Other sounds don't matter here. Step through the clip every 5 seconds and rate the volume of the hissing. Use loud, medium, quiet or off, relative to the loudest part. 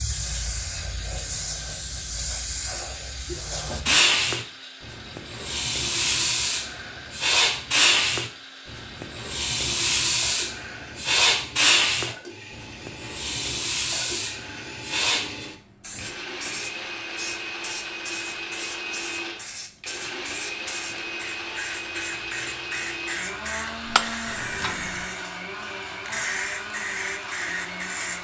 loud, loud, loud, medium, medium, medium.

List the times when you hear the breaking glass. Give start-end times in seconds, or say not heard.
23.9-24.8.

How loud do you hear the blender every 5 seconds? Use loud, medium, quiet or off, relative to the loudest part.
medium, medium, medium, loud, loud, loud.